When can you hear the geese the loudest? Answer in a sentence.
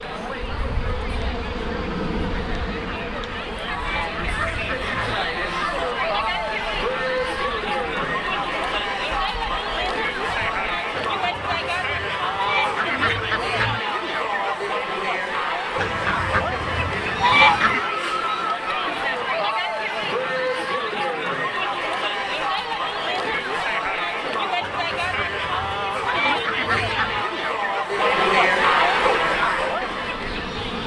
The volume of the geese peaks at 17 seconds.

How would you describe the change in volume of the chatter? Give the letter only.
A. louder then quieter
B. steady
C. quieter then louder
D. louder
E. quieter
D.